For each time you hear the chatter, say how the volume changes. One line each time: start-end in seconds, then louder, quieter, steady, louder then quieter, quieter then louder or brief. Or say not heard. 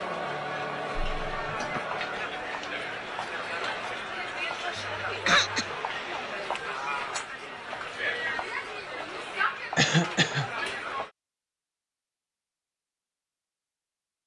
0.0-11.1 steady.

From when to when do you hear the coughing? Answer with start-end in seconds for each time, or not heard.
1.1-1.8, 4.8-5.7, 9.8-10.4.